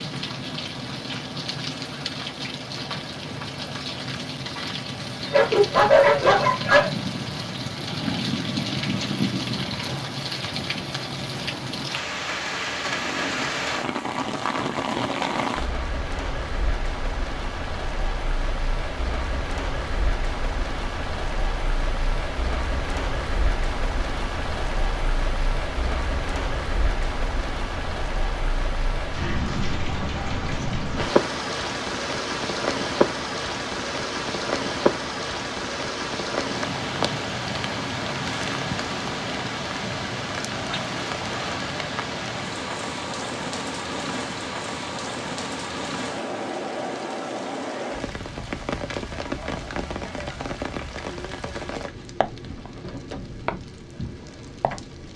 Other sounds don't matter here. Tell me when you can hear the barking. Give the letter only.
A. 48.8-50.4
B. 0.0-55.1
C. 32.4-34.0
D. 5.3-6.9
D.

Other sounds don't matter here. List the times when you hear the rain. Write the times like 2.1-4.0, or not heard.
0.0-55.1.